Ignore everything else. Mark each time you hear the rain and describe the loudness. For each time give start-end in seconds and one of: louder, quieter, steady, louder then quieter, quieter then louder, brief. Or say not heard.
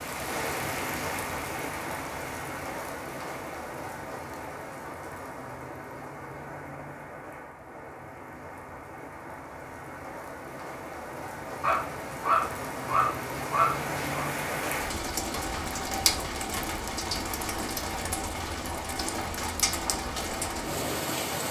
0.0-21.4 quieter then louder.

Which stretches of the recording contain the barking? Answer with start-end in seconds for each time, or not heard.
11.6-14.2.